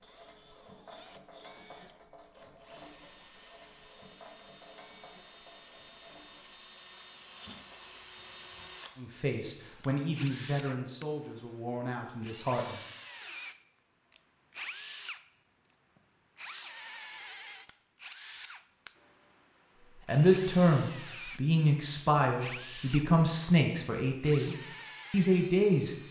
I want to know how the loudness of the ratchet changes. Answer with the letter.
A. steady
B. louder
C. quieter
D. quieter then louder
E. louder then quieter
C.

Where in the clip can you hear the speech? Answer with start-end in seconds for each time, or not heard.
8.9-12.8, 20.1-26.0.